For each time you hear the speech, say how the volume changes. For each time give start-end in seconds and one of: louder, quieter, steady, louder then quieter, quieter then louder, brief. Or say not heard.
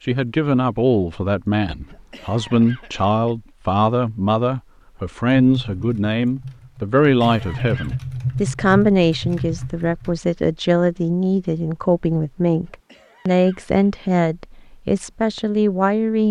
0.1-16.2 steady.